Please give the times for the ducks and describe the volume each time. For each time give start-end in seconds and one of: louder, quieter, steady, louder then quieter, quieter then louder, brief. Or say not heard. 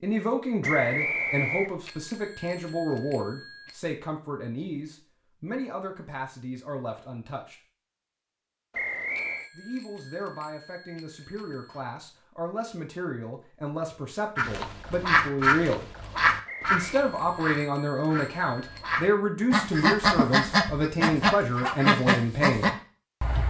14.3-23.4 quieter then louder.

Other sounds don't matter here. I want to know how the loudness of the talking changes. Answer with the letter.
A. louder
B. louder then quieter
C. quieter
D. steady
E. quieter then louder
E.